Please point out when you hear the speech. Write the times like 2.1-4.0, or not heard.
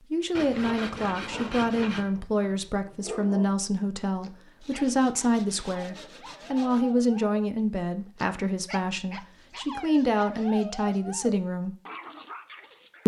0.0-11.8.